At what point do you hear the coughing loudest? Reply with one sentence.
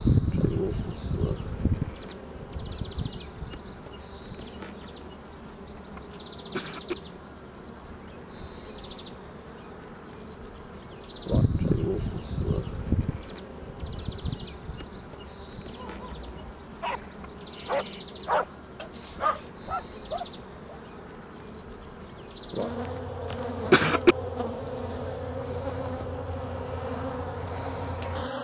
The volume of the coughing peaks at 24 seconds.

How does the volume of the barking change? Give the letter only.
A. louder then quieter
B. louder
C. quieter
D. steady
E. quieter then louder
B.